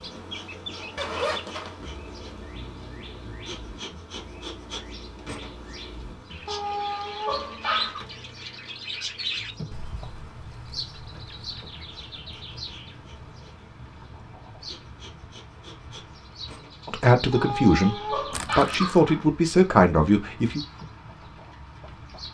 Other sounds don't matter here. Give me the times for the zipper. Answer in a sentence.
The zipper can be heard from 0.9 to 1.9 s and from 18.3 to 18.9 s.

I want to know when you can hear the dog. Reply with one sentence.
You can hear the dog from 6.5 to 8.0 s and from 17.3 to 19.2 s.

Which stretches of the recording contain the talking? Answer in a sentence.
The talking can be heard from 16.9 to 20.6 s.